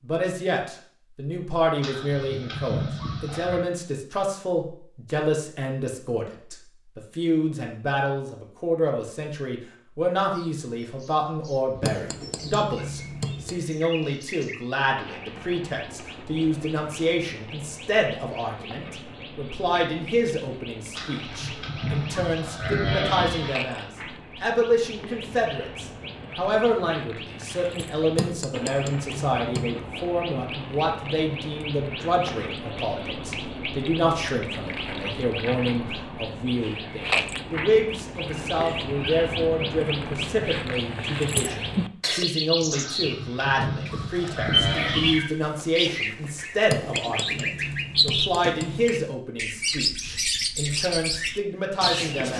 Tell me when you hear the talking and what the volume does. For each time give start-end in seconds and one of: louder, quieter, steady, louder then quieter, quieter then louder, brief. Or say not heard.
0.0-52.3 steady.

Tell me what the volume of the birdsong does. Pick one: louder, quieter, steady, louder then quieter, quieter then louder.
louder.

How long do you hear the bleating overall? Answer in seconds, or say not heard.
7 s.